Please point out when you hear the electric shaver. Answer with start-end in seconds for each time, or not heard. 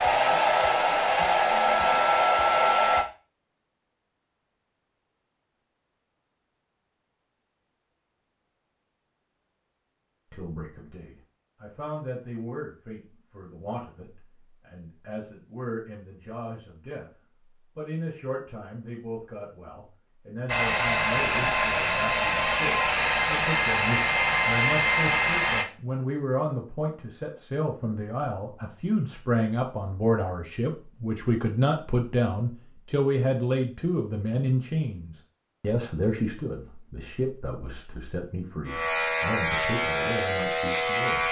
38.6-41.2.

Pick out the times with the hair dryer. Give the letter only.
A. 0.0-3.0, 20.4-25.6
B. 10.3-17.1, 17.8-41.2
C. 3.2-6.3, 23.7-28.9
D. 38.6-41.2
A.